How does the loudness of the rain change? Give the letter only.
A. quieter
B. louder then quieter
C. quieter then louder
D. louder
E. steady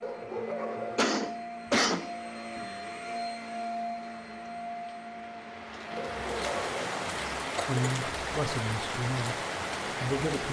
D.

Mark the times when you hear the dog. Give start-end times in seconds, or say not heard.
0.0-1.1, 6.0-7.0.